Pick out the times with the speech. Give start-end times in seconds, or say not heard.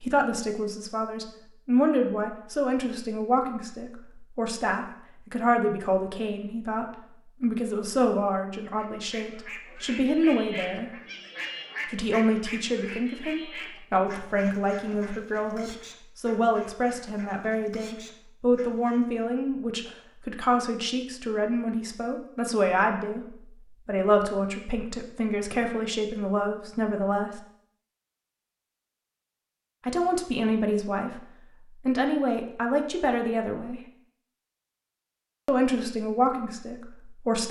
0.0-10.9, 11.8-27.4, 29.9-33.9, 35.5-37.4.